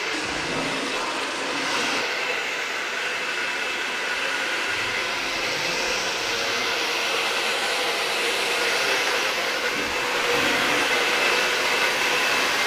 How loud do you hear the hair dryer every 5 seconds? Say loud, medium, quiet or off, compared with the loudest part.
medium, loud, loud.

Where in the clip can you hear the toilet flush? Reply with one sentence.
The toilet flush can be heard from 0.1 to 2.0 s, from 4.7 to 6.8 s and from 9.7 to 11.1 s.